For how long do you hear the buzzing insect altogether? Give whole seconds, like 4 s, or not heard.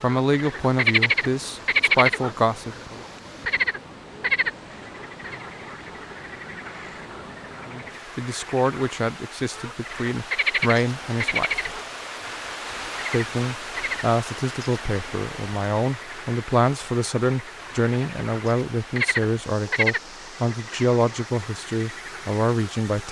not heard.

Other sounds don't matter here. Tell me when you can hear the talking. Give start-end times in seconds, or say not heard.
0.0-3.0, 7.7-11.6, 13.1-23.0.